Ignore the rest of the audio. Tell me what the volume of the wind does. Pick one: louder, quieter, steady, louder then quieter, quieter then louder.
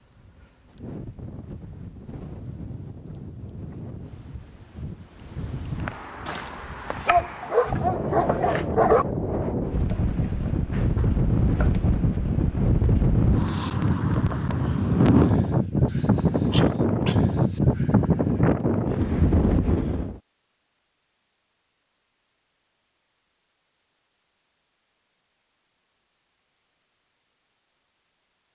louder.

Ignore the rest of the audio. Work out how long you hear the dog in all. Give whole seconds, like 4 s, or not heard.
4 s.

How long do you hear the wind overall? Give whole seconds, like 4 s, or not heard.
20 s.